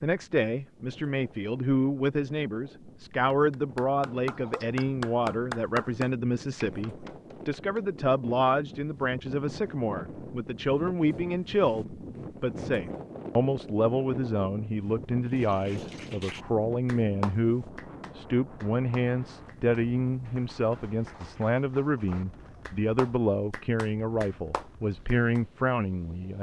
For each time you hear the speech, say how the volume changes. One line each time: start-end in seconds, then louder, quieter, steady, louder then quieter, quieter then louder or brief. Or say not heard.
0.0-26.3 steady.